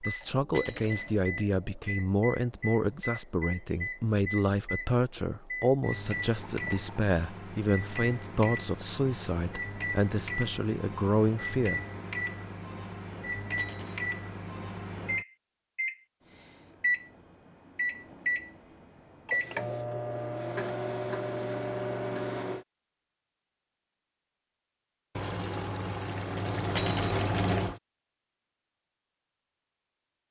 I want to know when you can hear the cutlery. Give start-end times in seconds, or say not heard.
0.5-1.1, 13.6-14.2, 26.8-27.4.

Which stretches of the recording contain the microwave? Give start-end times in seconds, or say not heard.
0.0-22.6.